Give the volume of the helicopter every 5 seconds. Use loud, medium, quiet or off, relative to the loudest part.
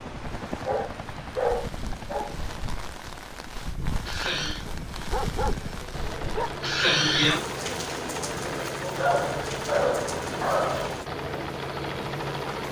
medium, loud, loud.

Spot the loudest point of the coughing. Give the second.
7 s.